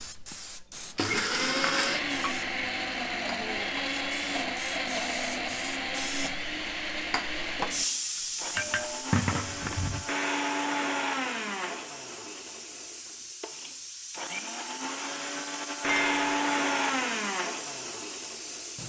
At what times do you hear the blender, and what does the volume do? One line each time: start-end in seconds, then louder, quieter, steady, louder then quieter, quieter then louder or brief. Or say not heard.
0.3-18.8 quieter then louder.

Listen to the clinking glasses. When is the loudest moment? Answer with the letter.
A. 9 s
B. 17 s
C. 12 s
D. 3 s
A.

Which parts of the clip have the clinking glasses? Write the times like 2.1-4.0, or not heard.
1.6-2.4, 8.2-10.1, 15.8-16.3.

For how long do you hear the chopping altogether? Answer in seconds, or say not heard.
not heard.